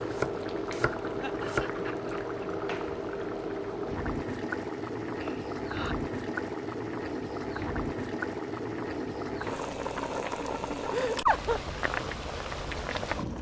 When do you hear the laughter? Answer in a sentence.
You can hear the laughter from 1.2 to 2.1 s, from 5.2 to 6.0 s and from 10.9 to 11.6 s.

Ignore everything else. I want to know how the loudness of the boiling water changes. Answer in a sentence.
The loudness of the boiling water stays about the same.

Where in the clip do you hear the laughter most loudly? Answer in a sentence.
The loudest moment of the laughter is at 11 seconds.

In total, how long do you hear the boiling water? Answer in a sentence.
The boiling water can be heard for 13 seconds in total.